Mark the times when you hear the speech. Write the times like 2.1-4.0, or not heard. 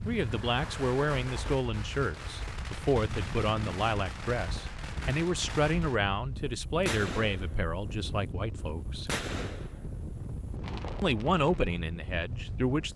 0.1-9.1, 11.0-12.9.